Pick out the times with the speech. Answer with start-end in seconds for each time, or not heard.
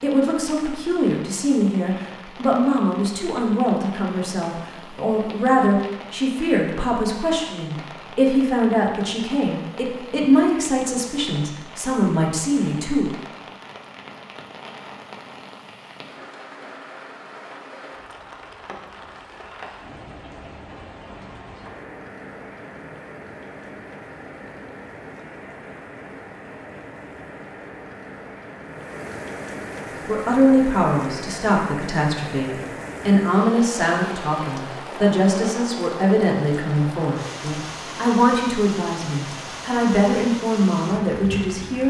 0.0-13.1, 30.1-41.8.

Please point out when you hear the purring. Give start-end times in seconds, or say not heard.
not heard.